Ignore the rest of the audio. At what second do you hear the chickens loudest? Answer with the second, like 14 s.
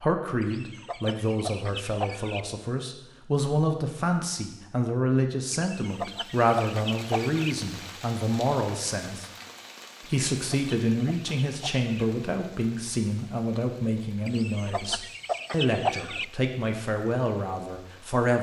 16 s.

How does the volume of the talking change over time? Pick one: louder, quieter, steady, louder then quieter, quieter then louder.
steady.